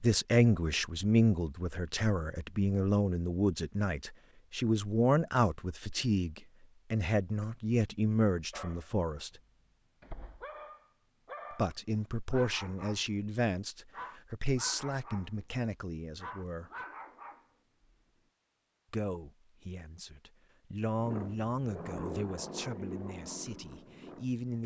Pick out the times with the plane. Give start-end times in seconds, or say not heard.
20.9-24.6.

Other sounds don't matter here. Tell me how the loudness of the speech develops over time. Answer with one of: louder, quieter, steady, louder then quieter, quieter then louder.
quieter.